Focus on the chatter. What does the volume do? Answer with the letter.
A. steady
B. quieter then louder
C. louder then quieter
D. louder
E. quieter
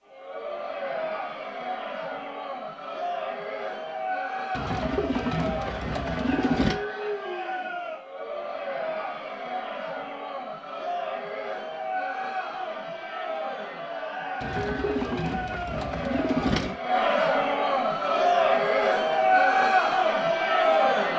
D.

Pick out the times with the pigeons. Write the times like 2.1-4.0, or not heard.
4.5-6.8, 14.4-16.8.